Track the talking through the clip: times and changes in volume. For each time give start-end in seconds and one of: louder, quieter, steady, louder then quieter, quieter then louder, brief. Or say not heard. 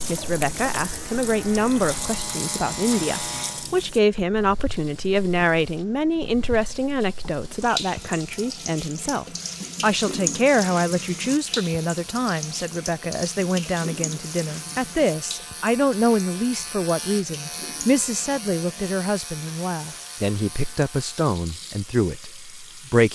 0.0-23.1 steady.